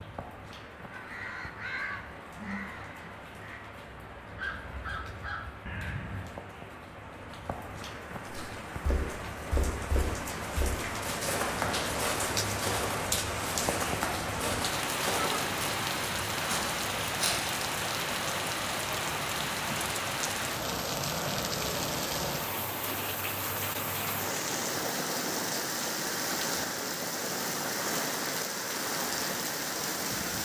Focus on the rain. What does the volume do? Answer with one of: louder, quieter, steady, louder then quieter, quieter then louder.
louder.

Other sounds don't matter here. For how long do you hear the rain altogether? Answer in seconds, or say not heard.
30 s.